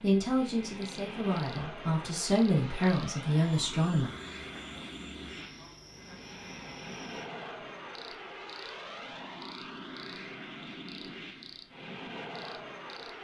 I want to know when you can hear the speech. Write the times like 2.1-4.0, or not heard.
0.0-4.1.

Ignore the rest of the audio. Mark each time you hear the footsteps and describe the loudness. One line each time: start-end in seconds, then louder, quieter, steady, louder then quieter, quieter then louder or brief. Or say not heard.
not heard.